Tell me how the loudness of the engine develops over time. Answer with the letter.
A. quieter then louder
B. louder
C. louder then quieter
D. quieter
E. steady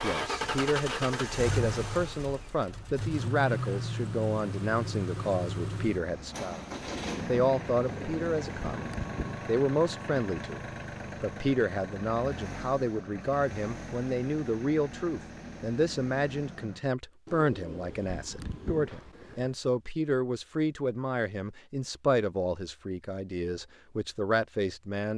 D.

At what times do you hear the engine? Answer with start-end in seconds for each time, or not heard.
0.0-16.9.